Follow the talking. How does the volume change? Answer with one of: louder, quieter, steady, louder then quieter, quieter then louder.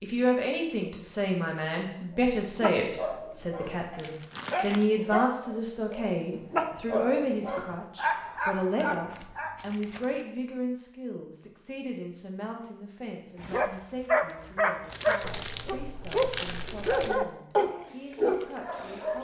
quieter.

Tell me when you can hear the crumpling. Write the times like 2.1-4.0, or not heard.
4.0-4.9, 8.8-10.3, 14.8-17.2.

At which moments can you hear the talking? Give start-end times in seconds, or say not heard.
0.0-19.1.